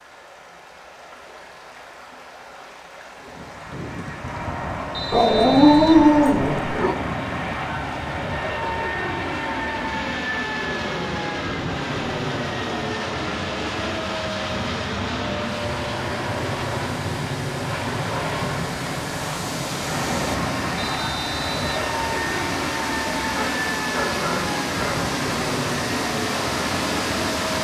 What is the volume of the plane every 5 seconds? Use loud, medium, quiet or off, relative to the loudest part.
medium, loud, loud, loud, loud, loud.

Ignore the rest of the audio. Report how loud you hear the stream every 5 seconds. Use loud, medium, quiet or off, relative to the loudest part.
quiet, quiet, medium, medium, loud, loud.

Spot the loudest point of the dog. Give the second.
6 s.